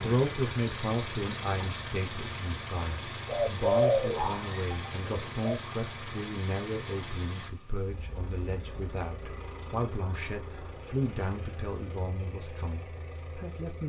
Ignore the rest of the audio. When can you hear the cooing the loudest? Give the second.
4 s.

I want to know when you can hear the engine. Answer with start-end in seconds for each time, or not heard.
0.0-13.8.